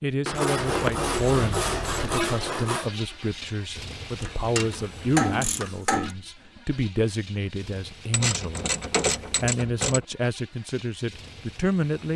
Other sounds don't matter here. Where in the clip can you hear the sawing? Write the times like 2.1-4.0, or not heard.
0.2-2.9.